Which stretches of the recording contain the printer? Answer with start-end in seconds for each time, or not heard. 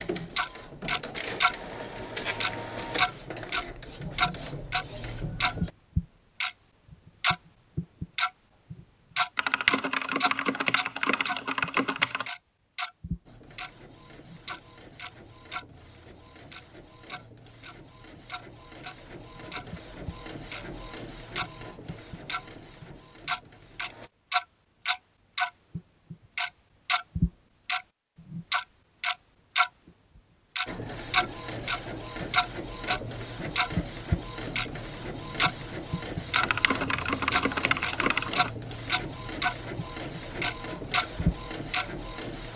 0.0-5.7, 13.2-24.1, 30.6-42.5.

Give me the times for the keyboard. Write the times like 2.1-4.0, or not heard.
9.3-12.3, 36.3-38.5.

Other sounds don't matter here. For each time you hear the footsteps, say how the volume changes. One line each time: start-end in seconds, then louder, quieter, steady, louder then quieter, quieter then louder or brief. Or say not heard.
not heard.